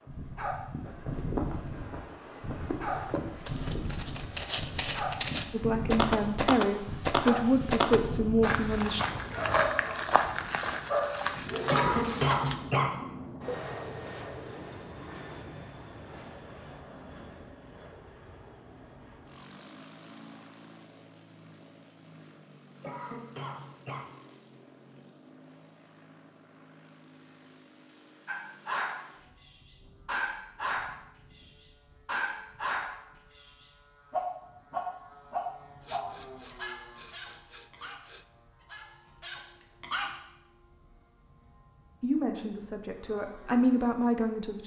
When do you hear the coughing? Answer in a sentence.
You can hear the coughing from 11.7 to 12.9 s and from 22.8 to 24.1 s.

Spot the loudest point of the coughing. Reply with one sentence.
The loudest moment of the coughing is at 12 seconds.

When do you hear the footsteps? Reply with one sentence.
You can hear the footsteps from 0.8 to 12.6 s.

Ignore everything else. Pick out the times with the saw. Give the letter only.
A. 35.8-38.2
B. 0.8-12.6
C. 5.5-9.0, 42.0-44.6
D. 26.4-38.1
A.